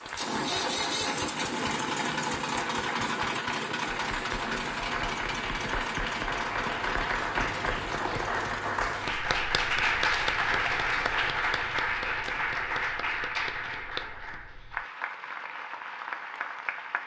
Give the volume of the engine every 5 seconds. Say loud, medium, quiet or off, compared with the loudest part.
loud, medium, off, off.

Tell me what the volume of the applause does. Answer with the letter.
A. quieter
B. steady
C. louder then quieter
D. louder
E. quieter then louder
C.